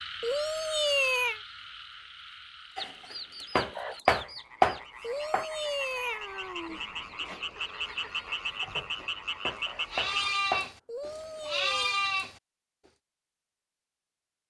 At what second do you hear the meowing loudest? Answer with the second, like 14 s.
1 s.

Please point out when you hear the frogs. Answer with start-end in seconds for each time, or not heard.
0.0-10.4.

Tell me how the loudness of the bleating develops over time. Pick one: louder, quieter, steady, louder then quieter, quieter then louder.
louder.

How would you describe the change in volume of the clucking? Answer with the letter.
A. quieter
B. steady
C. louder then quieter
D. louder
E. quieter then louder
E.